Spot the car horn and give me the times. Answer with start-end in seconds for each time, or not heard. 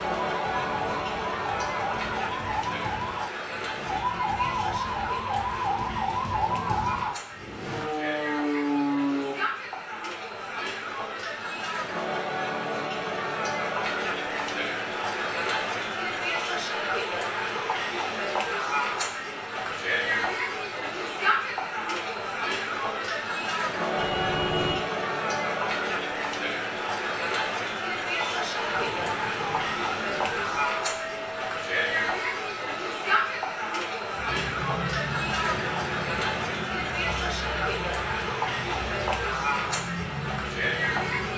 23.9-24.9.